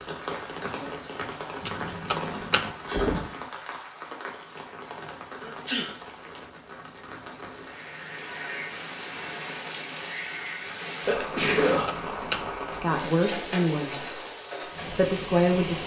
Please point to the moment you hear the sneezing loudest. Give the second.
12 s.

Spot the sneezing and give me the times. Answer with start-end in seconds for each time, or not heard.
0.7-1.1, 5.4-6.0, 11.1-12.0.